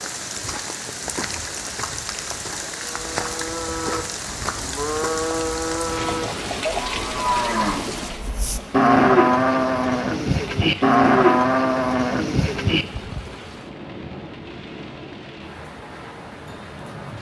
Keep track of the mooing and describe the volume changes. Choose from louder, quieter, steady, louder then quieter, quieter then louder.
louder.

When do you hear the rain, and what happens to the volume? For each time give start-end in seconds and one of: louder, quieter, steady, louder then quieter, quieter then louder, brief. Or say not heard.
0.0-17.1 quieter.